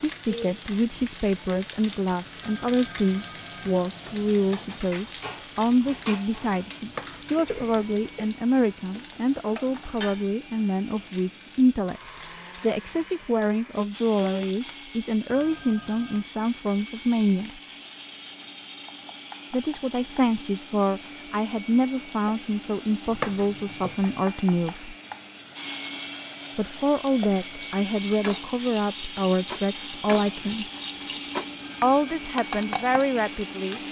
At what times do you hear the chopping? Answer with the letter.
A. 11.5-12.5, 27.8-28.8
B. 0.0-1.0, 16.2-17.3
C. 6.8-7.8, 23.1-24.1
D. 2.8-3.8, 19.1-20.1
C.